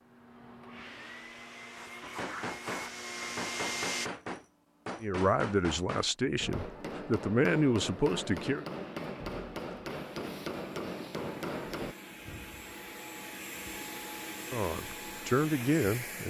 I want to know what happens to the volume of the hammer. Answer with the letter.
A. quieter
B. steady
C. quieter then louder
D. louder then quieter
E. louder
B.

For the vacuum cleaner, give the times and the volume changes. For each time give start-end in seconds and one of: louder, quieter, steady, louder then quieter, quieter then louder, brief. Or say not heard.
0.0-4.1 louder
8.7-16.2 louder.